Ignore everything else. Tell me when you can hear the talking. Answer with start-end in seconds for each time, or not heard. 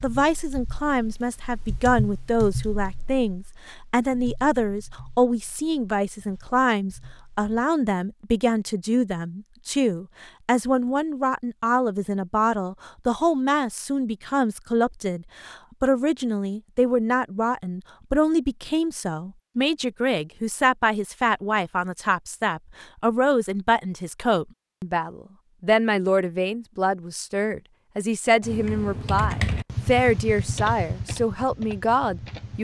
0.0-32.6.